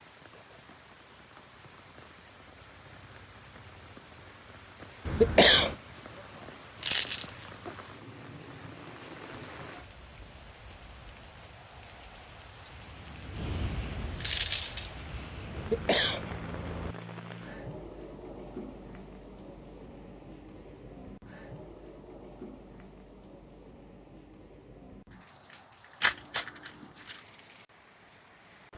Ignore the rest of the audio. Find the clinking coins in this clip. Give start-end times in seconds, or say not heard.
6.8-7.5, 14.2-14.8, 26.0-26.7.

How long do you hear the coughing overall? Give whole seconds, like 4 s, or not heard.
2 s.